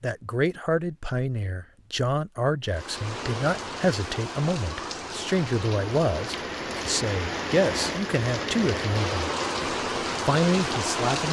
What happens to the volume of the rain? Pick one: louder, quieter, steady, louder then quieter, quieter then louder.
louder.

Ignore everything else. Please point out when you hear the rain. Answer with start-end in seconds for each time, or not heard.
2.6-11.2.